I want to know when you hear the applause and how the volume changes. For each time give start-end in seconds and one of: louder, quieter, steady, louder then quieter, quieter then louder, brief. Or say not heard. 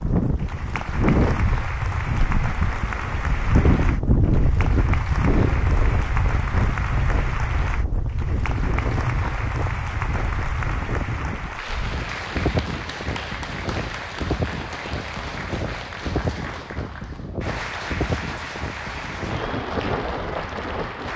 0.0-21.1 steady.